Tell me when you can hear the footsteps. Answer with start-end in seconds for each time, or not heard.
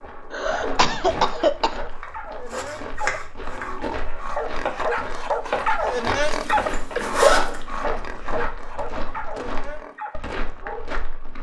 0.0-11.3.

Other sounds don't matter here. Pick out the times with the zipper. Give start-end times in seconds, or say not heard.
0.0-0.9, 6.3-7.6.